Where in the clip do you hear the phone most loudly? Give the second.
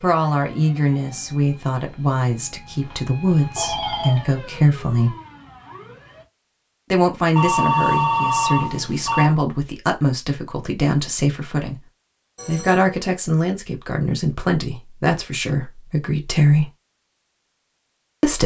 8 s.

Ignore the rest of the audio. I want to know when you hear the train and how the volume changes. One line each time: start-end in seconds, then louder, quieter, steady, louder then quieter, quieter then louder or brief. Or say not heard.
not heard.